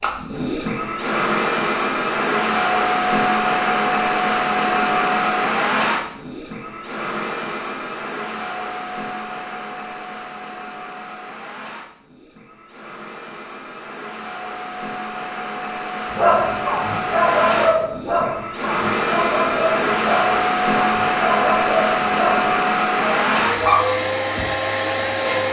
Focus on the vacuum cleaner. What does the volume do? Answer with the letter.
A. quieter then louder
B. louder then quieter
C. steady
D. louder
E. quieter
A.